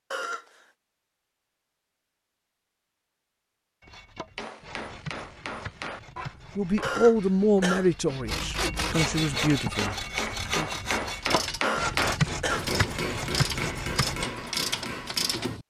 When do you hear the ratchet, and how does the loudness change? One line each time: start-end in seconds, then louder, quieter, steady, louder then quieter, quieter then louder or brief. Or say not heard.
11.2-15.6 louder.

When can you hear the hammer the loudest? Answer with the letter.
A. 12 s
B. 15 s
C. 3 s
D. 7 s
A.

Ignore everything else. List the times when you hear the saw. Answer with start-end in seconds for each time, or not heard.
3.8-14.2.